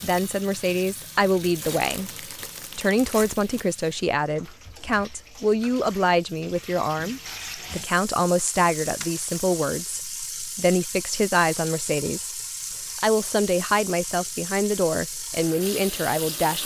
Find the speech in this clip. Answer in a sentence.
You can hear the speech from 0.0 to 2.1 s, from 2.8 to 12.3 s and from 12.9 to 16.6 s.